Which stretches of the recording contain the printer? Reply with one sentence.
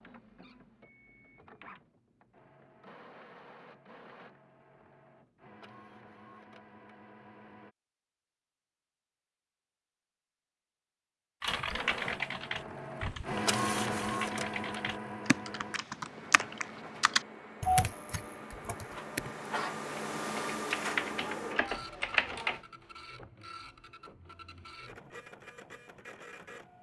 The printer can be heard from 0.0 to 7.8 s and from 11.4 to 26.7 s.